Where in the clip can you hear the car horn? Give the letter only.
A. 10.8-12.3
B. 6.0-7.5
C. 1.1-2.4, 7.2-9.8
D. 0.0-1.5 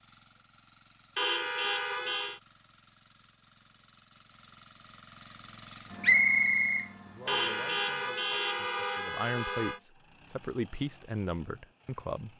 C.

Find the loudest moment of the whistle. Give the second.
6 s.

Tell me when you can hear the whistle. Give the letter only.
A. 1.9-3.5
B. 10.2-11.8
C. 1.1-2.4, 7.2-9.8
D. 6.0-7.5
D.